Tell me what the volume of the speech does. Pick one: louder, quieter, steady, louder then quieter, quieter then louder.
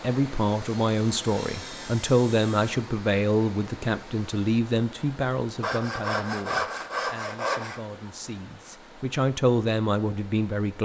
quieter then louder.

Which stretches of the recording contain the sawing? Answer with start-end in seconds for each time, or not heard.
0.6-2.8, 5.6-7.8.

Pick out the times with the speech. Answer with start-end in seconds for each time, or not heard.
0.0-10.7.